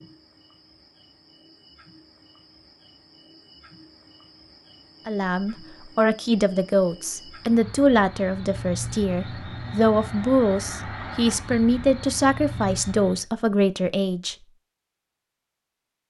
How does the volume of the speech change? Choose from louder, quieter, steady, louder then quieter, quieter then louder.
steady.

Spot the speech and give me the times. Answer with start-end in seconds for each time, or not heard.
5.0-14.3.